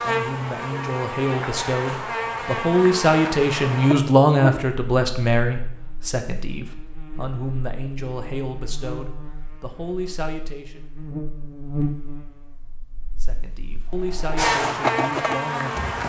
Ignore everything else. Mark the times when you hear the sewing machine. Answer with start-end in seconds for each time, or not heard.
13.8-16.0.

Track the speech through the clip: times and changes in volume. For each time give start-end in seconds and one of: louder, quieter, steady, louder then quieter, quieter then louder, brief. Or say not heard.
0.0-10.8 louder then quieter
13.2-16.0 brief.